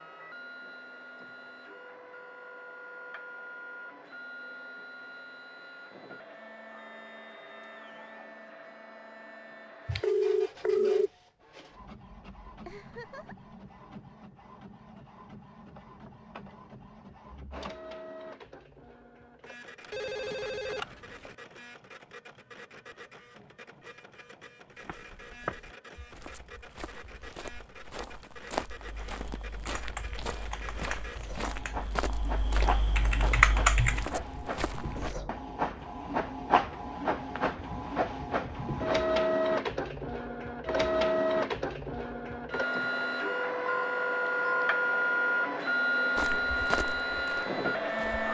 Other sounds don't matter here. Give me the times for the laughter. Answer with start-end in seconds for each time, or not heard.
12.7-13.6.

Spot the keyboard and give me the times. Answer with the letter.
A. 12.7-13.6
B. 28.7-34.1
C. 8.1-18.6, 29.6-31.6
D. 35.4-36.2
B.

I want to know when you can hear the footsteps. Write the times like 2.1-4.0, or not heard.
24.7-35.1, 46.1-48.2.